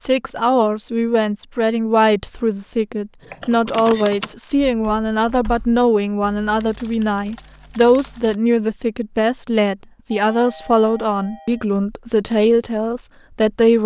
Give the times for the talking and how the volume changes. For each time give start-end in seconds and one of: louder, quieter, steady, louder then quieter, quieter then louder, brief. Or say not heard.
0.0-13.8 steady.